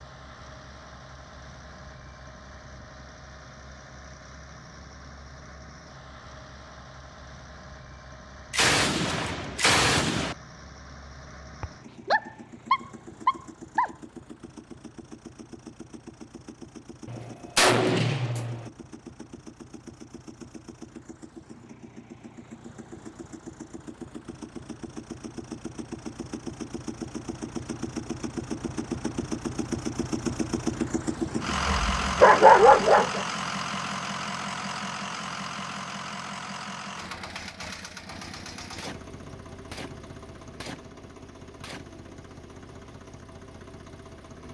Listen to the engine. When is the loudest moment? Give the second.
32 s.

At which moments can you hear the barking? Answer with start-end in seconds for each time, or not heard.
11.6-13.9, 31.5-33.2.